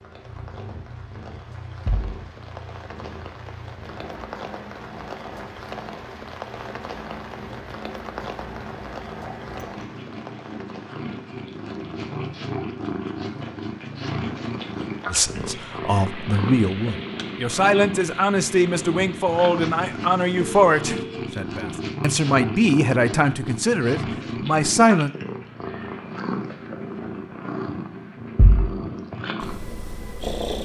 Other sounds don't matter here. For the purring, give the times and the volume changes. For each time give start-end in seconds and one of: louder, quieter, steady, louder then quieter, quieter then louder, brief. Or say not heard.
0.0-30.5 louder.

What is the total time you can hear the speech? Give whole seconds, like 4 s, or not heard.
10 s.